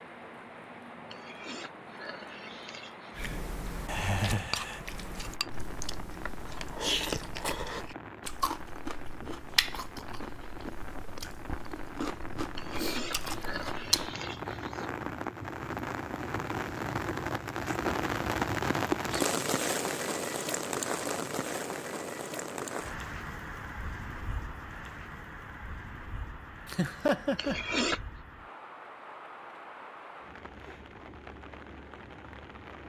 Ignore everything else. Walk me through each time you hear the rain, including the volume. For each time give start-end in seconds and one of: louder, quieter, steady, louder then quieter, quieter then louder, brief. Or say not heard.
0.0-32.8 louder then quieter.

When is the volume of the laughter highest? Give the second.
27 s.